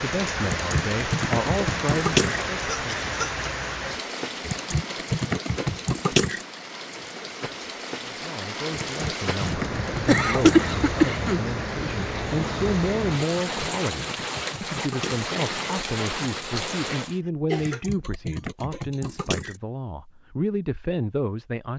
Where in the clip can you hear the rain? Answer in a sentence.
You can hear the rain from 0.0 to 17.2 s.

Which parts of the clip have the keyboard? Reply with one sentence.
You can hear the keyboard from 0.5 to 2.5 s, from 4.4 to 6.5 s, from 8.8 to 10.8 s, from 13.4 to 15.3 s and from 17.6 to 19.6 s.